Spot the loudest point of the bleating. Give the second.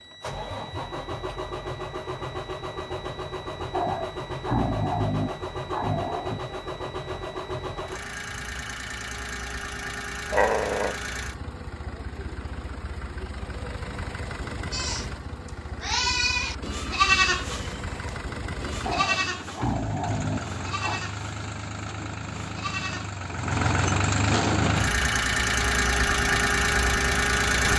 17 s.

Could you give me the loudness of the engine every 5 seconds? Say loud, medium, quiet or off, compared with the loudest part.
medium, medium, quiet, quiet, medium, loud.